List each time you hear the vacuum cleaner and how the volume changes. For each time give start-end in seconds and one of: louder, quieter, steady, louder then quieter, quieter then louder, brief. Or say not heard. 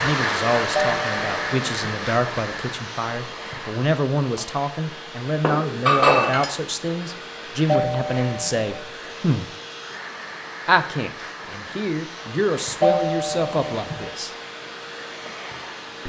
0.0-16.0 quieter.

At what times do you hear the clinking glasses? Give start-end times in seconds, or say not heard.
5.4-6.5.